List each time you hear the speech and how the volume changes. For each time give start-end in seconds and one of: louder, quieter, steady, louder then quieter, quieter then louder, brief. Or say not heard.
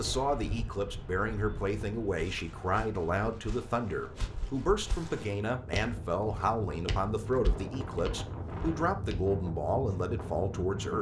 0.0-10.9 steady.